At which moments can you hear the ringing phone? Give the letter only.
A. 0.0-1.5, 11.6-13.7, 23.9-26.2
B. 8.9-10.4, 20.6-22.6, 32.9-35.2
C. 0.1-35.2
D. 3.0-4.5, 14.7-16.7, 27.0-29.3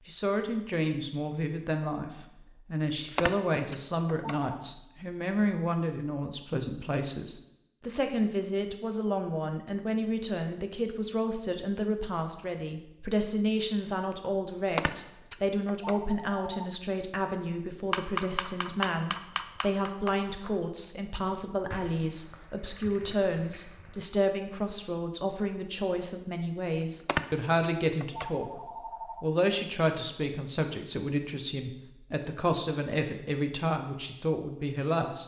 D.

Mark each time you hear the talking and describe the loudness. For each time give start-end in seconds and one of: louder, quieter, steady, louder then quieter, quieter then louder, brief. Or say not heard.
0.1-35.2 steady.